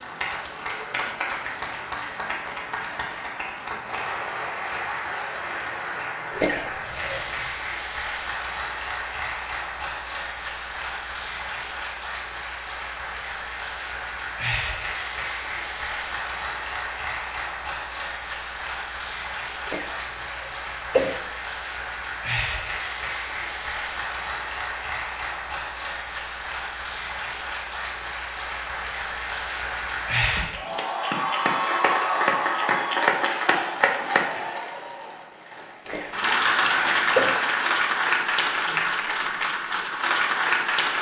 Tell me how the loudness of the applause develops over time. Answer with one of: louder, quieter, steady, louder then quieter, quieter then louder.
louder.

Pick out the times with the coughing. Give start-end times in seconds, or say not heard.
6.3-7.5, 19.6-21.2, 35.9-37.4.